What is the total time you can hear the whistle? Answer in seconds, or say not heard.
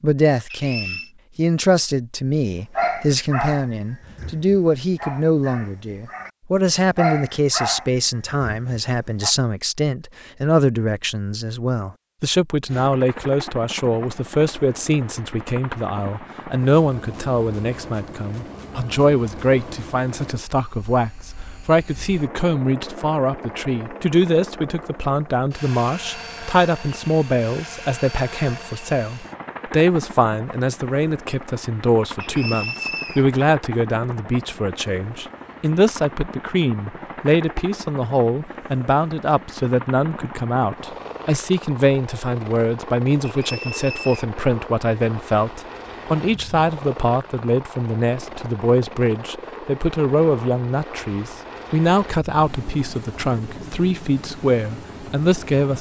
3 s.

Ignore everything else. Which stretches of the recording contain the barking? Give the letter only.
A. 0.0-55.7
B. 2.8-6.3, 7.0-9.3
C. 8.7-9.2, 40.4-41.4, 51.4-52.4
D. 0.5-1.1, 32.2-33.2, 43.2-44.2
B.